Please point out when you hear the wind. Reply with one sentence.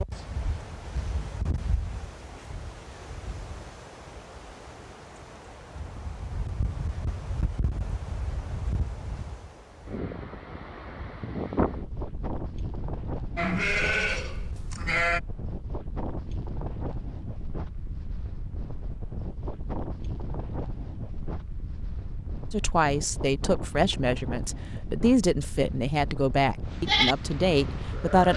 You can hear the wind from 0.0 to 28.3 s.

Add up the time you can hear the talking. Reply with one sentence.
The talking can be heard for 6 seconds in total.